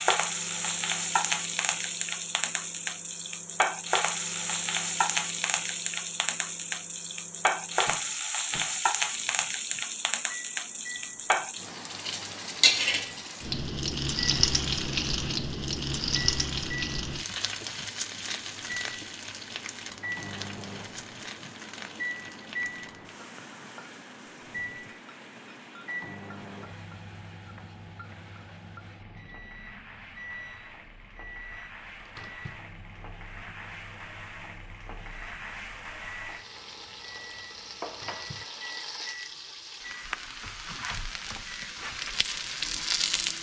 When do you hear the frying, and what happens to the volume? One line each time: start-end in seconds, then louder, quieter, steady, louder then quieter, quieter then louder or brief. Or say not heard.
0.0-43.3 quieter then louder.